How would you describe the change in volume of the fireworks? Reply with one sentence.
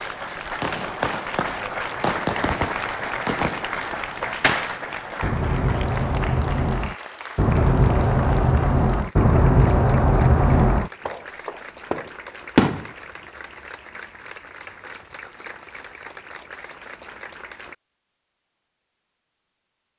The loudness of the fireworks goes up.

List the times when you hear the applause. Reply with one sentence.
You can hear the applause from 0.0 to 17.8 s.